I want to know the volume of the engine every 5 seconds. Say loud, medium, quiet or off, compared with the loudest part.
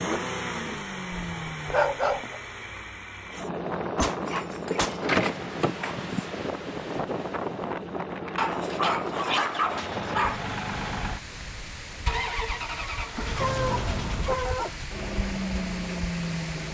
loud, medium, loud, loud.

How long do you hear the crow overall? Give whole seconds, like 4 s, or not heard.
not heard.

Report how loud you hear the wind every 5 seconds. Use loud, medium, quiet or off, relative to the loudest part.
loud, loud, medium, medium.